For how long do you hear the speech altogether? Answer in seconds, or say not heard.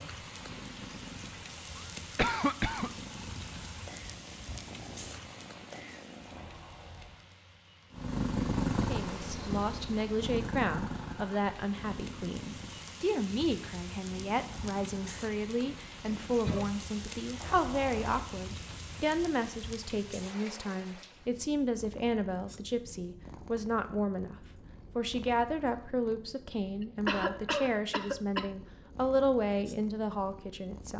22 s.